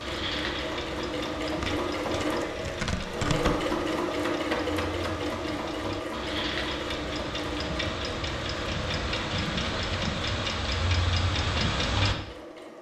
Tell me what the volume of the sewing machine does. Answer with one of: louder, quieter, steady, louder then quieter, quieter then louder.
quieter.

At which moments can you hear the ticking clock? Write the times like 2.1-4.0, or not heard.
0.0-12.2.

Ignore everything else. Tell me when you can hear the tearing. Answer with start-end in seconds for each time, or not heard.
1.6-3.7.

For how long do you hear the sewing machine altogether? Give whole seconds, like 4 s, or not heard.
13 s.